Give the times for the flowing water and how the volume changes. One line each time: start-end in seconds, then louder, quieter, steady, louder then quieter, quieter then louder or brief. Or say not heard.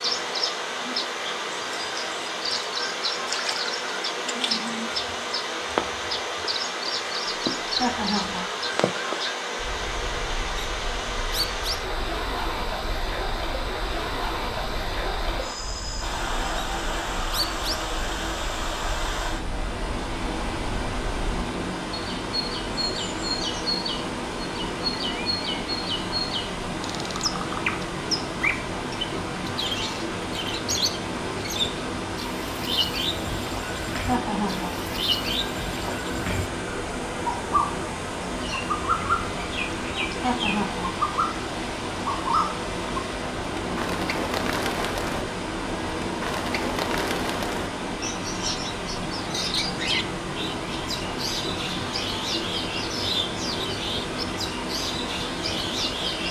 0.0-56.2 steady.